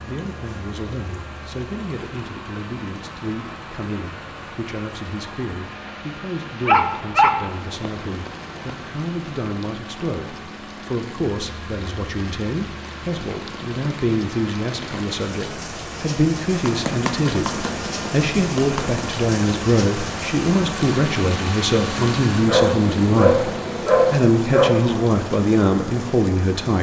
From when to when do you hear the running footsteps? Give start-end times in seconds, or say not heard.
16.6-19.0.